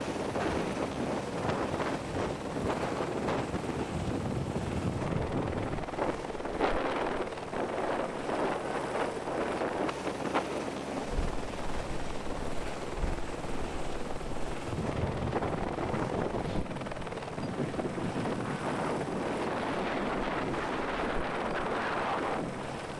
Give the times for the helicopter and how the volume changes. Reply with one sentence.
The helicopter can be heard from 0.0 to 22.9 s, at a steady volume.